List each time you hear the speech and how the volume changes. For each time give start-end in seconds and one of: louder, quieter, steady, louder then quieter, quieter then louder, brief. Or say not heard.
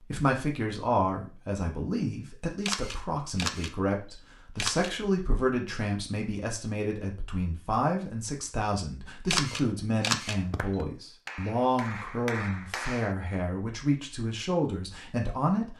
0.0-15.7 steady.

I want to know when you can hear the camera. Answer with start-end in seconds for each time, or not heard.
2.6-4.9, 9.3-10.3.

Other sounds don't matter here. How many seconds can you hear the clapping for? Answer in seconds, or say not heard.
3 s.